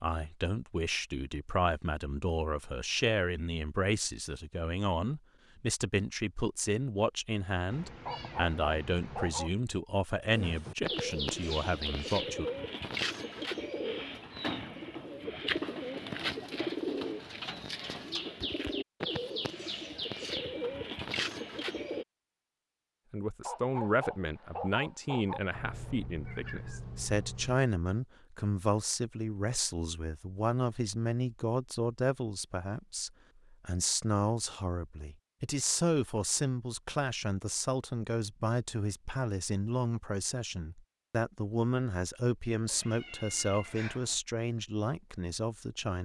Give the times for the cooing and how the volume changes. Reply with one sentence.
The cooing can be heard from 10.3 to 22.1 s, at a steady volume.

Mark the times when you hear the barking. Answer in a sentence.
The barking can be heard from 8.1 to 9.5 s and from 23.4 to 25.4 s.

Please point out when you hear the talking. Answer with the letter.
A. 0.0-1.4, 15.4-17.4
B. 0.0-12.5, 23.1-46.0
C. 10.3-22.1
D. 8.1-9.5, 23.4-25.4
B.